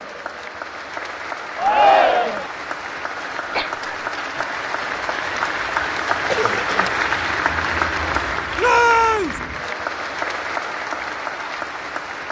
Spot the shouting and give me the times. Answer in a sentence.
The shouting can be heard from 1.6 to 2.5 s and from 8.6 to 9.4 s.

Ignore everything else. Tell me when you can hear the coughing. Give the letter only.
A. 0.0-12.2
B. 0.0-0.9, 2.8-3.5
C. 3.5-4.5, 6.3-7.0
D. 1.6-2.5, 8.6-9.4
C.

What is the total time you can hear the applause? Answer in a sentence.
You can hear the applause for 12 seconds altogether.